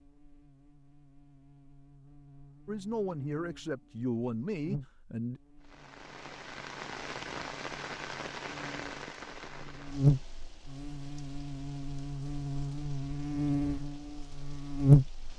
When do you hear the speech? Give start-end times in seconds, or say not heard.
2.6-5.4.